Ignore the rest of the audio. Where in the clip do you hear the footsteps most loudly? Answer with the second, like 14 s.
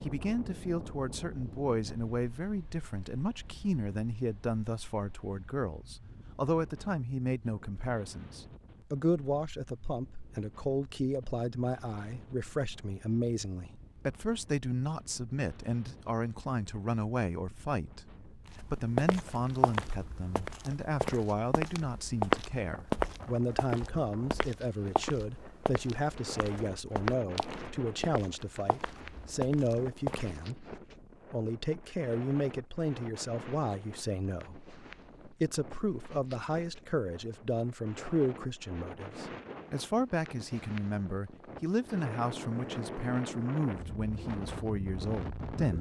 22 s.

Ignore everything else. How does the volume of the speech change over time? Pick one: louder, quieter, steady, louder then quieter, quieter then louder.
steady.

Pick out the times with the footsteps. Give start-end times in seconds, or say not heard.
18.5-30.4.